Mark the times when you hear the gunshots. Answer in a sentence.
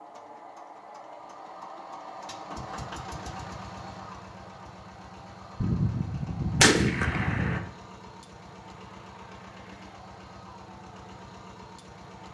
The gunshots can be heard from 5.6 to 7.6 s.